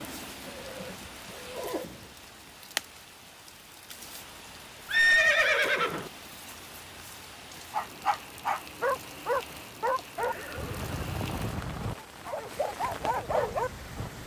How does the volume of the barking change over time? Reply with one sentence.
The volume of the barking goes down, then up.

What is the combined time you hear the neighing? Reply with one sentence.
You can hear the neighing for 4 seconds altogether.